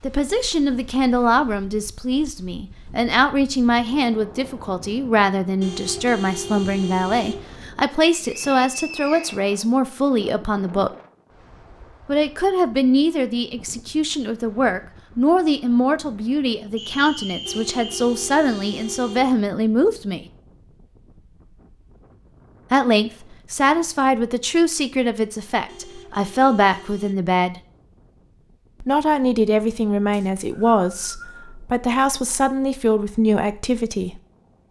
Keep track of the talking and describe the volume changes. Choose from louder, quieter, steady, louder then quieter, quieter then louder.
steady.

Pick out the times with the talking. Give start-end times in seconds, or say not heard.
0.0-10.9, 12.1-20.2, 22.7-27.6, 28.8-34.2.